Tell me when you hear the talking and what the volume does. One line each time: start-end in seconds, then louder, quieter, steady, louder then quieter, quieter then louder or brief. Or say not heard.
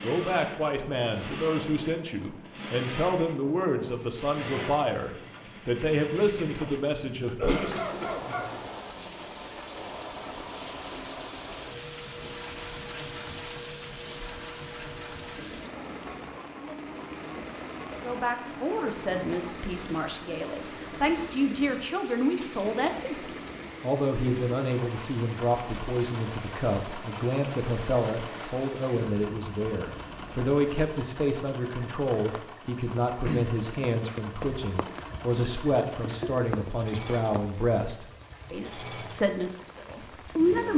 0.0-7.8 steady
17.9-40.7 steady.